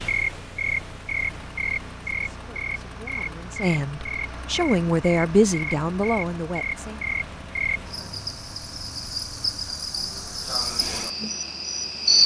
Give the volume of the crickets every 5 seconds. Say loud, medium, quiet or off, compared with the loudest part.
medium, medium, loud.